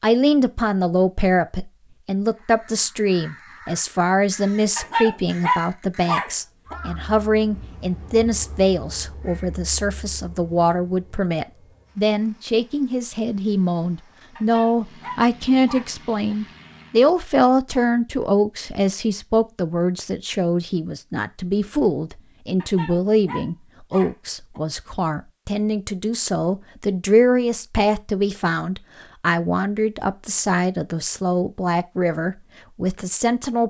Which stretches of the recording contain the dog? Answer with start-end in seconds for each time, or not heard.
4.8-6.8, 14.3-16.4, 22.6-24.6.